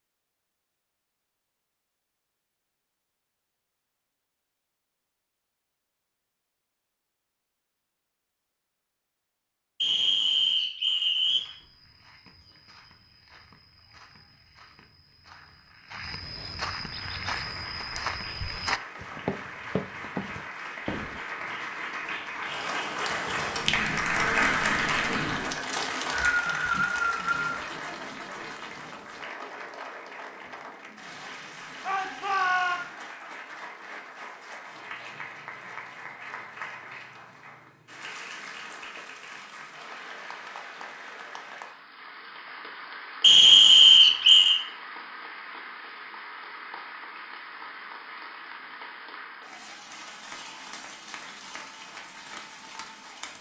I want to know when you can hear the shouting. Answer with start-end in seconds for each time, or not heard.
31.8-32.8.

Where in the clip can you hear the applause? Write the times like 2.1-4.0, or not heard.
16.9-53.3.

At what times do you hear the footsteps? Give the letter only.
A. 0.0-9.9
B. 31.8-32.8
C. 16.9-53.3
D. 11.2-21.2
D.